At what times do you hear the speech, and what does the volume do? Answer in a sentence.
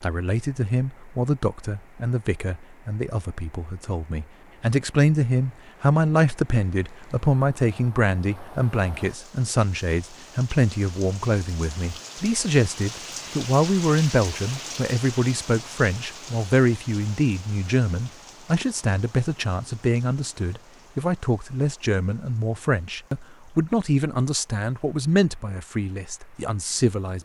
You can hear the speech from 0.0 to 27.2 s, at a steady volume.